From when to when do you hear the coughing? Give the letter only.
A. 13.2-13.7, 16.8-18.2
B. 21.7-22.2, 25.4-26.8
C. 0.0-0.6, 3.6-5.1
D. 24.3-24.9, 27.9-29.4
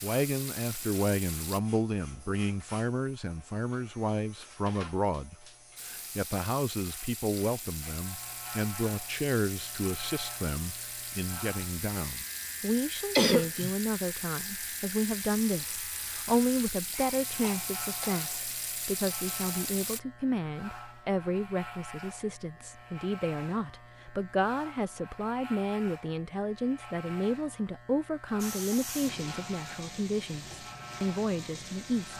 A.